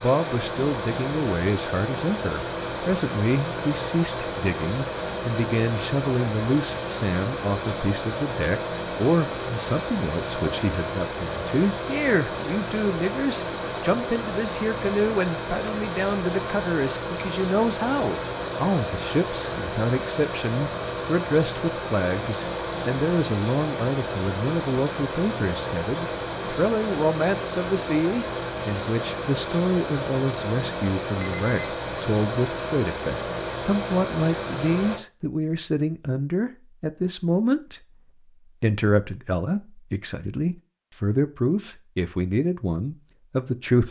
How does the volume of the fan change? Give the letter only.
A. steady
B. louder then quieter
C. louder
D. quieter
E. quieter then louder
A.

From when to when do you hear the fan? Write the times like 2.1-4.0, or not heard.
0.0-35.0.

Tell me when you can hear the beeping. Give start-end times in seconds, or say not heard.
31.2-31.9.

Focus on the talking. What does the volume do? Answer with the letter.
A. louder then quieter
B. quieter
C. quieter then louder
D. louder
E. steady
E.